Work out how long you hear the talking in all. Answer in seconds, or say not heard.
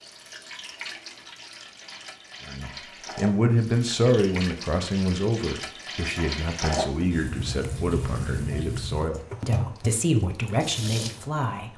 9 s.